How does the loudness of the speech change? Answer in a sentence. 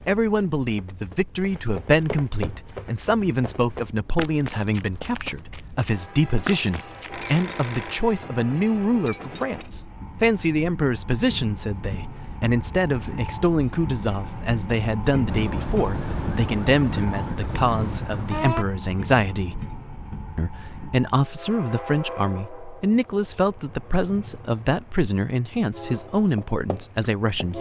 The loudness of the speech stays about the same.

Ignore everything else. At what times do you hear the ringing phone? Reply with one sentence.
The ringing phone can be heard from 7.1 to 8.0 s.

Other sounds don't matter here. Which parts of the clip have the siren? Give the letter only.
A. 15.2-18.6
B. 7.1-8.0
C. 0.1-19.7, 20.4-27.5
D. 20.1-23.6
A.